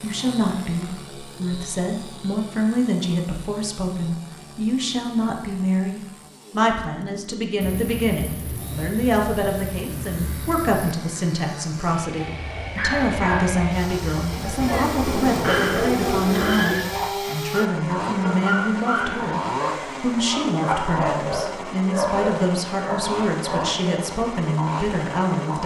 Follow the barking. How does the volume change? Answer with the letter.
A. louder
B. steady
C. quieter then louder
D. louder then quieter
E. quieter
B.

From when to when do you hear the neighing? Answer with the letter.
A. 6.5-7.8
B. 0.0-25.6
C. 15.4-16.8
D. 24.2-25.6
C.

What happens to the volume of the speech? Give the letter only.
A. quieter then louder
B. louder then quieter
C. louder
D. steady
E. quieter
D.